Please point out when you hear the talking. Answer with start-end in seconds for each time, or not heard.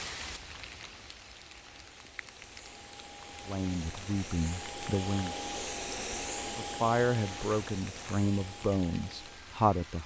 3.5-5.3, 6.5-10.0.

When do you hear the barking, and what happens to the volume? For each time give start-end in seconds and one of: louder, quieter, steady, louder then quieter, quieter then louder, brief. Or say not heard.
not heard.